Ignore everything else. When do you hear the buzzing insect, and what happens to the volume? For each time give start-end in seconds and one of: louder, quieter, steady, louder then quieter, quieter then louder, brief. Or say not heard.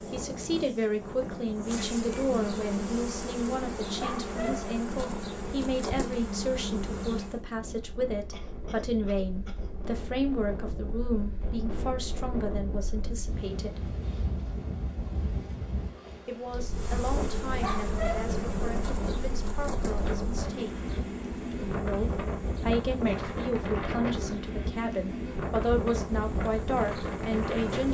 0.0-7.5 louder
16.6-27.8 quieter then louder.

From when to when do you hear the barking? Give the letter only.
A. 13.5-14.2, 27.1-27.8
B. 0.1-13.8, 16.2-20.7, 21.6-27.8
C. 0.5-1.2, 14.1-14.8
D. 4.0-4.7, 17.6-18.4
D.